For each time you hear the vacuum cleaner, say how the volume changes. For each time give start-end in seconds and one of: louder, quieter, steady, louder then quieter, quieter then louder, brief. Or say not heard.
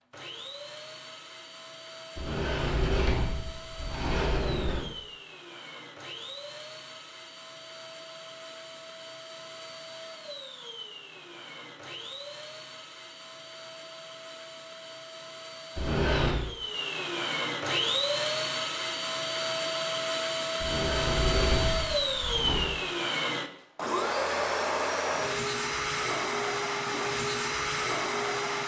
0.1-28.6 louder.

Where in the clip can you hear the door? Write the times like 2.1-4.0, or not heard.
2.1-4.9, 15.8-16.4, 20.6-22.8.